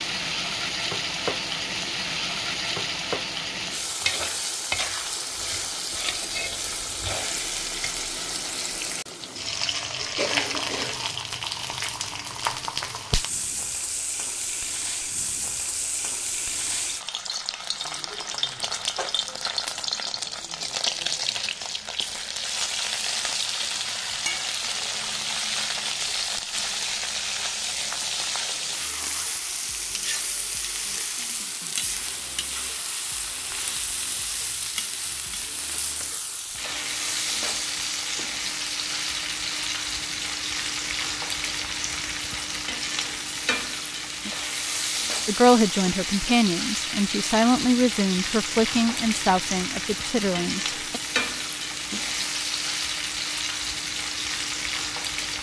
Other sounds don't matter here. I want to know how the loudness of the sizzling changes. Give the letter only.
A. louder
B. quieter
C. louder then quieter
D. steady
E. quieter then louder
D.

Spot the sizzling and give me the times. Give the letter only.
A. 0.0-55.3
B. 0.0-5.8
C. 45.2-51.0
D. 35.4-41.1
A.